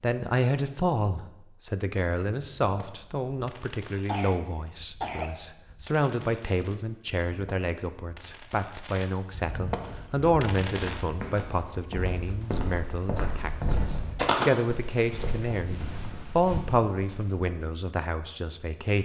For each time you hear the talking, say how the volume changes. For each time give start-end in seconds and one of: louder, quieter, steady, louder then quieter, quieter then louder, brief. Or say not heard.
0.0-19.0 steady.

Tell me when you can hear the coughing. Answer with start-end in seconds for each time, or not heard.
4.0-5.3.